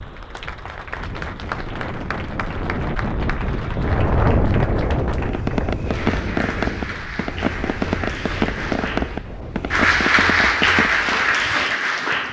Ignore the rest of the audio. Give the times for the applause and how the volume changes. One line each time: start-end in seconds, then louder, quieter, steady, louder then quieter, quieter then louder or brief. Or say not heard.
0.0-12.2 louder.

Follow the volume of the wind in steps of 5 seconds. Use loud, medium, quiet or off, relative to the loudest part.
loud, medium, off.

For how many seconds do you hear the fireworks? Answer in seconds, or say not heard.
6 s.